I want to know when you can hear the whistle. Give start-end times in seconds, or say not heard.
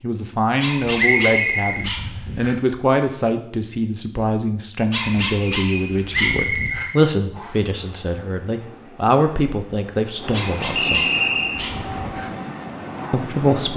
0.9-1.8, 6.1-7.5, 10.8-11.6.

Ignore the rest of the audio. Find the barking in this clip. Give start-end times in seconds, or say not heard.
0.6-2.5, 4.9-6.8, 10.3-12.2.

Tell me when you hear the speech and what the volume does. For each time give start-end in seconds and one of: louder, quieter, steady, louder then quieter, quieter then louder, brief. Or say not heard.
0.0-11.0 steady
13.1-13.7 brief.